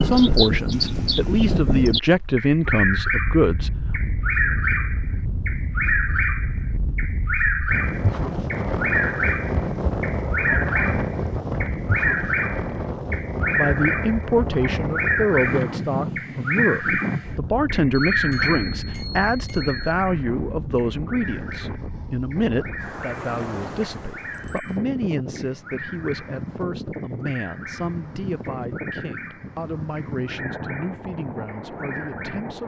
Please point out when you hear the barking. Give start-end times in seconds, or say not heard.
not heard.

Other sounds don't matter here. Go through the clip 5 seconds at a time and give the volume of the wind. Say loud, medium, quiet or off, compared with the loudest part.
loud, loud, loud, loud, medium, medium, medium.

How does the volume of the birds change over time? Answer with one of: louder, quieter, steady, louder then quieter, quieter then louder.
quieter.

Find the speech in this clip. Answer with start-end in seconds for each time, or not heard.
0.0-4.0, 13.6-32.6.